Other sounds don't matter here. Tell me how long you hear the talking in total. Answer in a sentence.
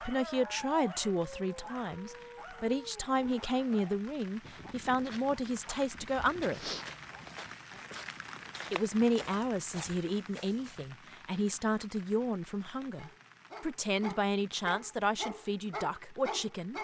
You can hear the talking for 15 seconds altogether.